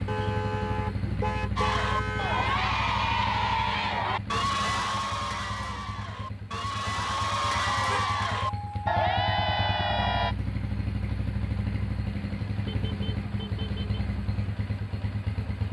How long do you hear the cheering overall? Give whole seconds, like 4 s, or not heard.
9 s.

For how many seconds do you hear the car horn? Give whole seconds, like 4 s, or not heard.
5 s.